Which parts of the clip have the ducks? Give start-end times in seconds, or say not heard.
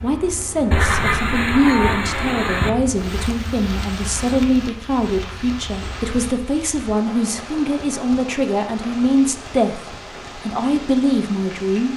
0.7-2.7.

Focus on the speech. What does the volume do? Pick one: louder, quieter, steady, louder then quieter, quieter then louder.
steady.